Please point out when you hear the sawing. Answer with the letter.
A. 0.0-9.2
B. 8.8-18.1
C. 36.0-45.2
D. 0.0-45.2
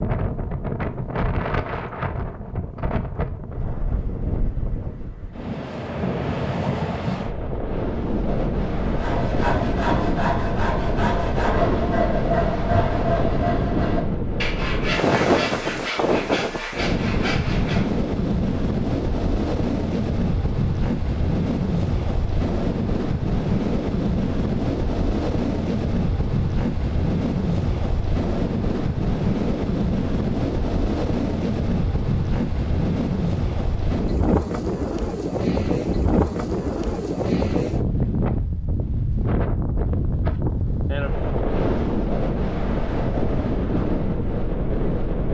B.